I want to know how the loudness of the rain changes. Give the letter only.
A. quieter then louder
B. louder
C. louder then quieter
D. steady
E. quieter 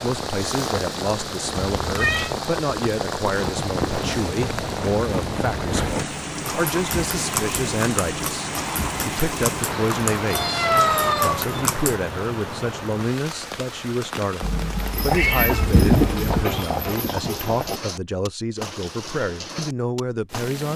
E.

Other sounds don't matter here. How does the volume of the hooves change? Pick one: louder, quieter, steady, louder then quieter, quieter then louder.
louder.